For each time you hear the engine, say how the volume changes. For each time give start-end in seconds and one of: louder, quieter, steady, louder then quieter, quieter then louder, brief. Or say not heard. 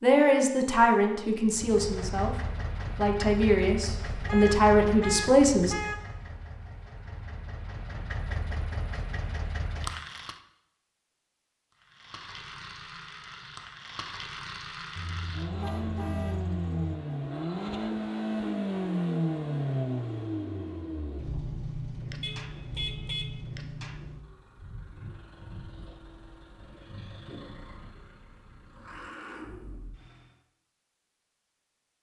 1.4-10.4 quieter then louder
11.7-30.4 louder then quieter.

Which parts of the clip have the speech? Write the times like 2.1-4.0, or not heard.
0.0-5.8.